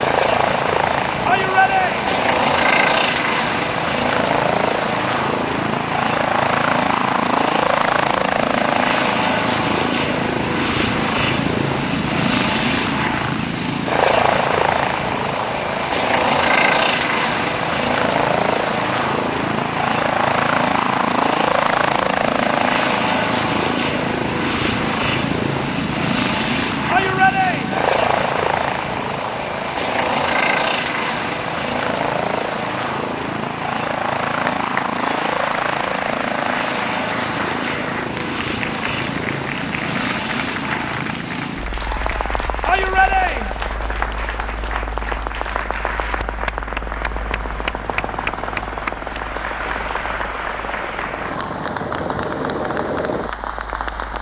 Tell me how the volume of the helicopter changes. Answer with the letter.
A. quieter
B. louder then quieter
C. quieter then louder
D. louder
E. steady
A.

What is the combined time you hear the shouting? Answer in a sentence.
You can hear the shouting for 3 seconds altogether.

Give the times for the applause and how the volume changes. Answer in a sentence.
The applause can be heard from 34.2 to 54.1 s, at a steady volume.